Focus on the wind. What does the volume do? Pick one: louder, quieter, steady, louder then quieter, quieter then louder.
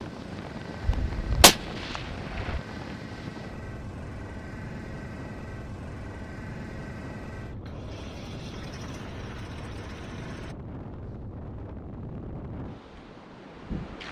steady.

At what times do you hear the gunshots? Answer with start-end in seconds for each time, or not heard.
0.8-2.6.